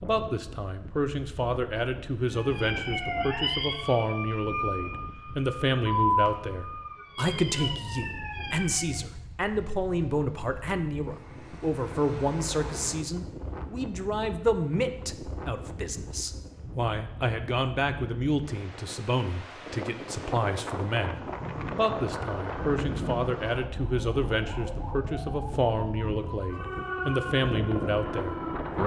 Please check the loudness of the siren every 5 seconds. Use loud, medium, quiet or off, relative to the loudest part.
loud, loud, off, off, medium, medium.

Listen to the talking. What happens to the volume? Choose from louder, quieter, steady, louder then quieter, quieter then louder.
steady.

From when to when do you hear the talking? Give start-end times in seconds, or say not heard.
0.0-28.8.